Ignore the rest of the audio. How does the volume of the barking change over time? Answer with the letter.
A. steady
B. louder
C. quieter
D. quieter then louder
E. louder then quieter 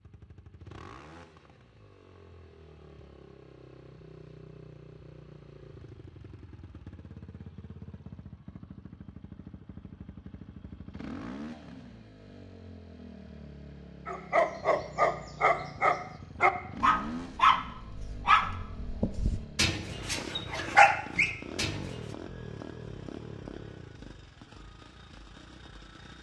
D.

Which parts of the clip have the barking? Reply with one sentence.
You can hear the barking from 14.1 to 21.9 s.